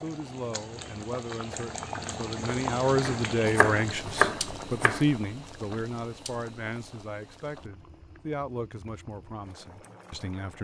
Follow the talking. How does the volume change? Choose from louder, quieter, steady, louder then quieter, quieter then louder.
louder then quieter.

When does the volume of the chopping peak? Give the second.
4 s.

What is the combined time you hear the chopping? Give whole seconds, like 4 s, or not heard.
2 s.